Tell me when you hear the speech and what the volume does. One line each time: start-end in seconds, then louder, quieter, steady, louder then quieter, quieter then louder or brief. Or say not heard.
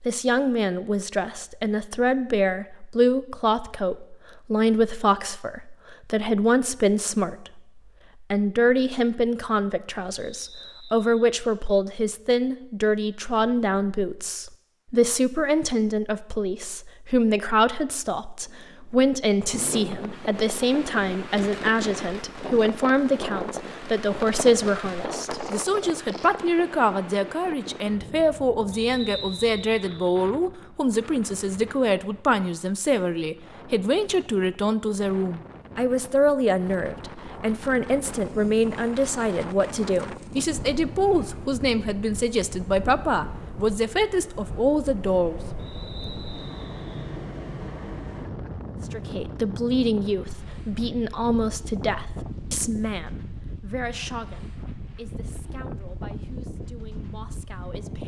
0.0-45.4 steady
48.9-58.0 quieter.